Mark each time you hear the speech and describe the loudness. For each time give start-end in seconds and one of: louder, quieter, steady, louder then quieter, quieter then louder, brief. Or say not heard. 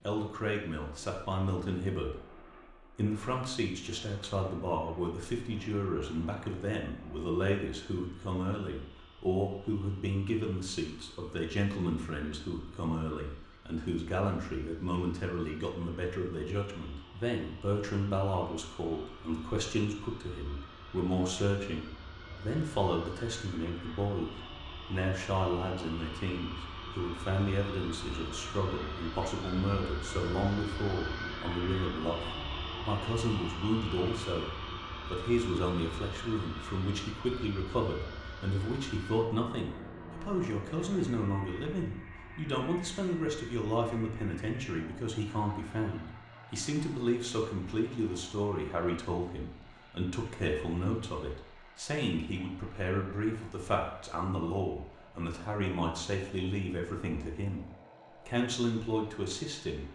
0.1-2.3 brief
3.0-59.8 steady.